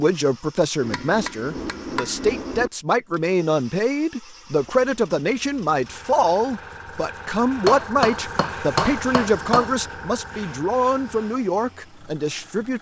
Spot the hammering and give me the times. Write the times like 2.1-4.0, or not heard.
0.8-2.7, 7.7-9.7.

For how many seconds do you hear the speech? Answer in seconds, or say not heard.
13 s.